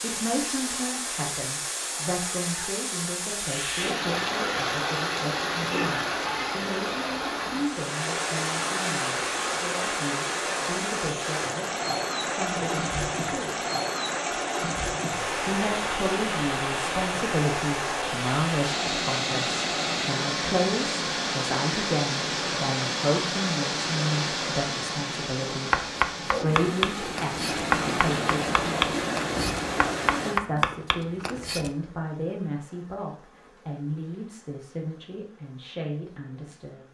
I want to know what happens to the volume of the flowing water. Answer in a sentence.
The volume of the flowing water stays about the same.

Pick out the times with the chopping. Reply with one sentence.
You can hear the chopping from 25.7 to 31.7 s.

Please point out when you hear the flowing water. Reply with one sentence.
You can hear the flowing water from 0.0 to 30.4 s.